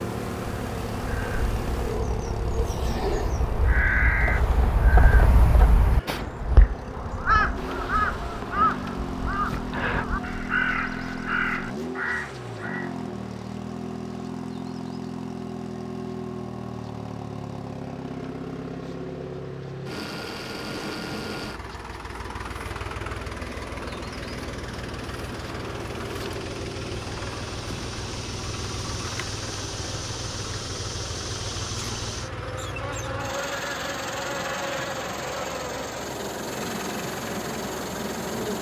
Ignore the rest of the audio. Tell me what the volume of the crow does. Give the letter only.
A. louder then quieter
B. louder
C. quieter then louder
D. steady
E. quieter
B.